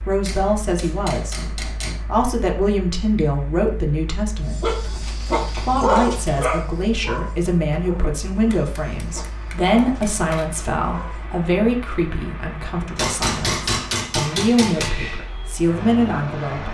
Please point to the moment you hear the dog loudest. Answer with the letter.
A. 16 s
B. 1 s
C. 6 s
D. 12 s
C.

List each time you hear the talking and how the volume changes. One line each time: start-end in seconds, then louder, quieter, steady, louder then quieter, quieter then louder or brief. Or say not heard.
0.1-4.8 quieter then louder
5.5-16.6 quieter then louder.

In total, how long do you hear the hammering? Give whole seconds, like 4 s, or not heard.
7 s.